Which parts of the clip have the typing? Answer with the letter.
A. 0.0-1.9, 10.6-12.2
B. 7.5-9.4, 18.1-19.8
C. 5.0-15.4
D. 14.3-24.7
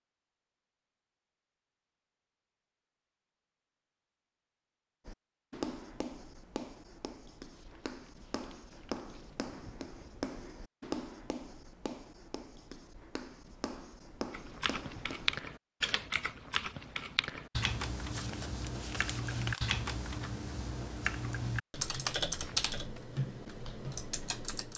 D.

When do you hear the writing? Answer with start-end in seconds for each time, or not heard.
5.0-15.4.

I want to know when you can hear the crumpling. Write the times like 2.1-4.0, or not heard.
7.5-9.4, 18.1-19.8.